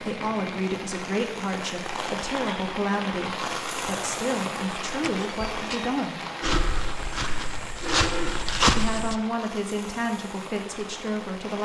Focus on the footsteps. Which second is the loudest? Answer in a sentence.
The volume of the footsteps peaks at 9 seconds.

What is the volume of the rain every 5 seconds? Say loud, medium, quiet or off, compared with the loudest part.
loud, loud, medium.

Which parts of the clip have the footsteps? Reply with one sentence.
The footsteps can be heard from 6.4 to 9.2 s.